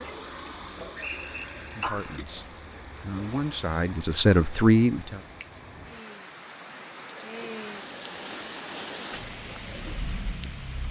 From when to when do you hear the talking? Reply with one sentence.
You can hear the talking from 1.6 to 5.2 s.